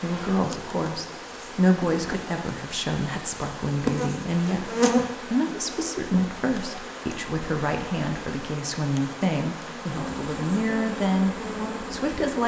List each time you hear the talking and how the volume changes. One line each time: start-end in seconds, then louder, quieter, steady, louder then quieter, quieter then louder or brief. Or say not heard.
0.0-12.4 steady.